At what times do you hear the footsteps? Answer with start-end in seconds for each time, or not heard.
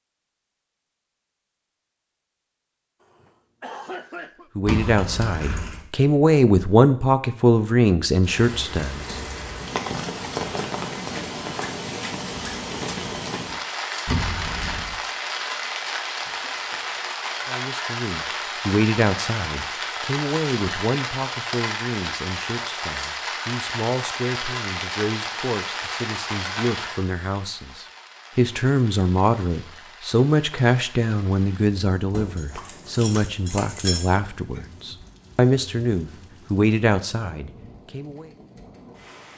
not heard.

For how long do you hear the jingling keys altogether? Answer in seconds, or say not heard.
4 s.